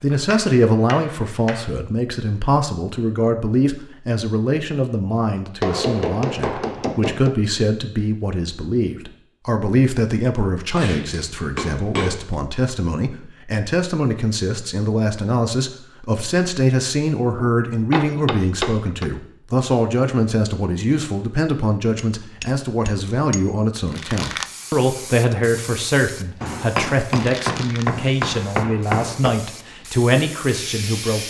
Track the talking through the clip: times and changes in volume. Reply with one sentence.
The talking can be heard from 0.0 to 31.2 s, at a steady volume.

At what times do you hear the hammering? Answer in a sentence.
The hammering can be heard from 0.1 to 1.7 s, from 5.6 to 7.3 s, from 10.8 to 12.3 s, from 17.4 to 19.1 s, from 21.9 to 23.4 s and from 26.4 to 29.4 s.